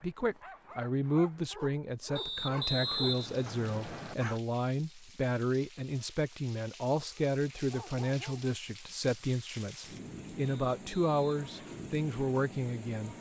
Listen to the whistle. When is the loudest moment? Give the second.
3 s.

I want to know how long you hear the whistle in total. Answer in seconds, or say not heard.
3 s.